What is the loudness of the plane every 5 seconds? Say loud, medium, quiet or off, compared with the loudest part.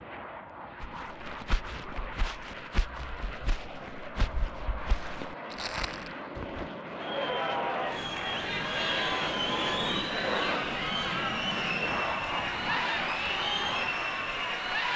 medium, loud, loud.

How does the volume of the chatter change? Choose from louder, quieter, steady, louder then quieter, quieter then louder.
steady.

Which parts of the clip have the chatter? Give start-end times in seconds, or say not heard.
7.0-14.9.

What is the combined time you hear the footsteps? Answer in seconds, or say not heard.
6 s.